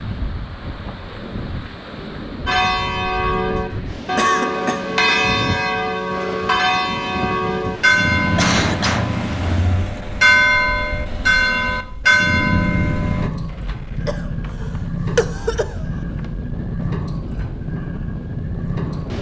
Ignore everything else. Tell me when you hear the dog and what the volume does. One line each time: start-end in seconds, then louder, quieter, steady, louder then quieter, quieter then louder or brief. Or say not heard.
not heard.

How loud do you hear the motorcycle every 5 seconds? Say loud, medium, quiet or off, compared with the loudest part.
off, off, loud, loud.